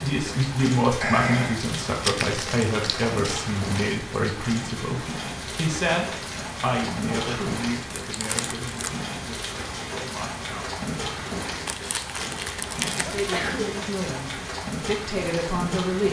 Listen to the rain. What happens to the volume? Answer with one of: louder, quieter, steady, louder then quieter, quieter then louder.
steady.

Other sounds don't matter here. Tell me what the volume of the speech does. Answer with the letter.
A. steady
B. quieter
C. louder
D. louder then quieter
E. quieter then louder
E.